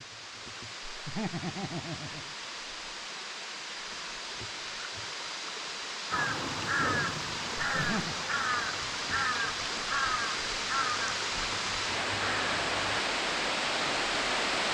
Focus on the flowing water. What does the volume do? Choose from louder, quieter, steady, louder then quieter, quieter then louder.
louder.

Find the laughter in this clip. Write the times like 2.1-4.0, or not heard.
0.9-2.4, 7.8-8.2.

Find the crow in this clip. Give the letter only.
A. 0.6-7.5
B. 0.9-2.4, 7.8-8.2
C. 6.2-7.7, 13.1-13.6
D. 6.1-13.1
D.